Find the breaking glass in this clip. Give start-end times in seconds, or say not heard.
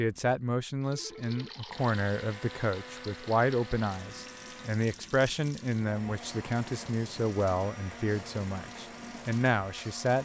not heard.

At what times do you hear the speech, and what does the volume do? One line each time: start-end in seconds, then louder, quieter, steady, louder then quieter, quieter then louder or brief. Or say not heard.
0.0-10.2 steady.